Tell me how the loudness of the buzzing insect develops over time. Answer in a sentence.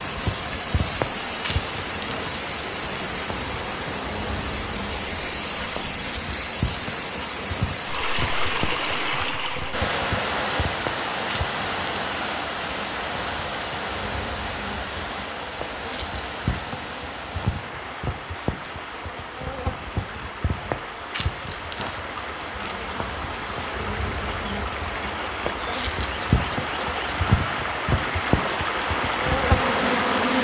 The volume of the buzzing insect goes up.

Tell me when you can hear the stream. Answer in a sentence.
The stream can be heard from 0.0 to 30.4 s.